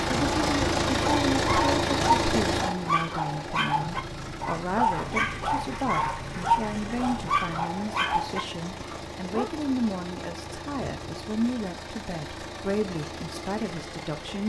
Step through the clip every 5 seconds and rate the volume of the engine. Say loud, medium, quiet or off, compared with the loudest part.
loud, medium, medium.